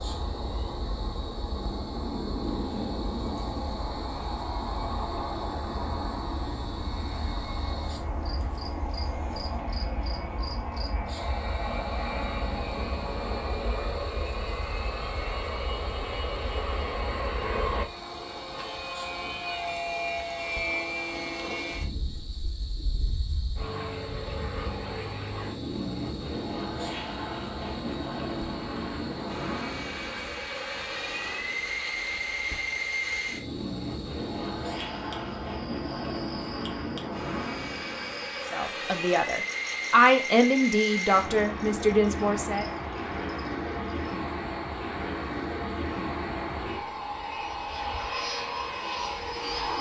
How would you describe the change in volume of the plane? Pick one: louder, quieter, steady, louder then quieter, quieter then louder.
steady.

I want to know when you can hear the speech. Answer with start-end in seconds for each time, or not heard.
38.5-42.6.